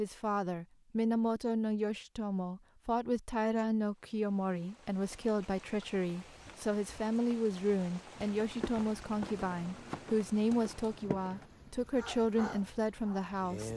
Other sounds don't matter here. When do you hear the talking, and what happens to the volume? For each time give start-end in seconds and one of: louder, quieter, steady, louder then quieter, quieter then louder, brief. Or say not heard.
0.0-13.7 steady.